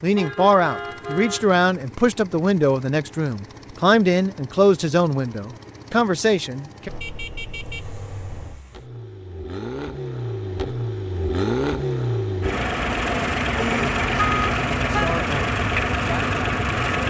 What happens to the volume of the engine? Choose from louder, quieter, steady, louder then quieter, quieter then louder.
louder.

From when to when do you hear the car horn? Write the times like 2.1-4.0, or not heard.
0.1-1.5, 6.8-8.7, 13.6-15.2.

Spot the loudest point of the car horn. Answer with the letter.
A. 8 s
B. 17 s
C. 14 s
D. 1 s
C.